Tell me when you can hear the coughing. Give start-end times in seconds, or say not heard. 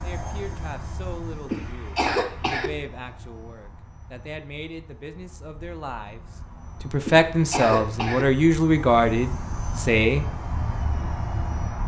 1.5-2.7, 7.0-8.2.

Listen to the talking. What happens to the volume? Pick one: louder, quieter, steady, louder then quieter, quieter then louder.
louder.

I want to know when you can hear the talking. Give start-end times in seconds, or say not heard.
0.0-10.2.